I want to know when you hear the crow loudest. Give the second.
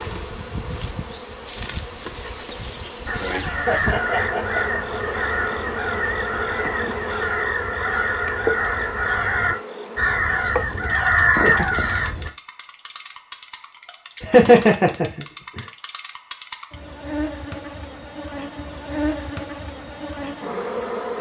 11 s.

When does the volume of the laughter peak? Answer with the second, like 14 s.
15 s.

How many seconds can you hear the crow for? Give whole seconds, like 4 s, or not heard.
9 s.